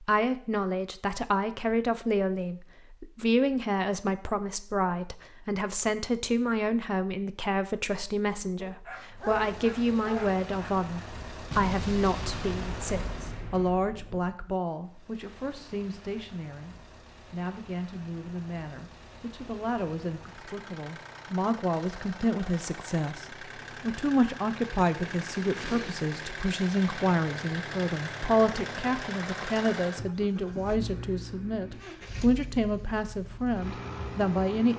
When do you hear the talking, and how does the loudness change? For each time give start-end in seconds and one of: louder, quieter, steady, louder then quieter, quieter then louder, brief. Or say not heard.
0.0-34.7 quieter then louder.